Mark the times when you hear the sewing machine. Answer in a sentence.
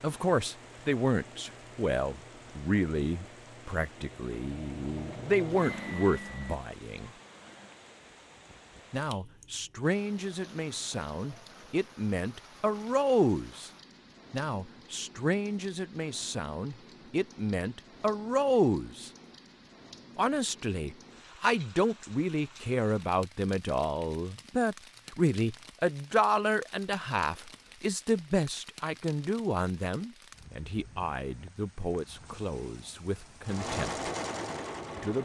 The sewing machine can be heard from 0.1 to 7.8 s and from 33.4 to 35.2 s.